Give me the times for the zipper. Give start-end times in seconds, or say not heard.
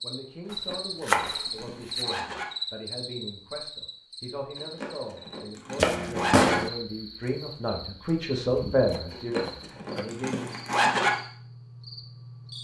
0.5-2.5, 4.5-6.5, 9.1-11.1.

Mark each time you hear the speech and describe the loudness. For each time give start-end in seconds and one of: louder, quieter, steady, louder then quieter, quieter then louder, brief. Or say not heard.
0.0-10.5 louder.